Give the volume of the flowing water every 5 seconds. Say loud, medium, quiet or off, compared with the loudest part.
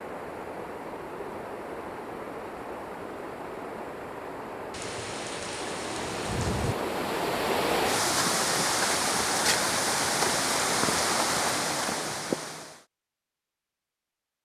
medium, loud, loud.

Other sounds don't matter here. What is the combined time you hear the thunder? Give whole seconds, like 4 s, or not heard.
2 s.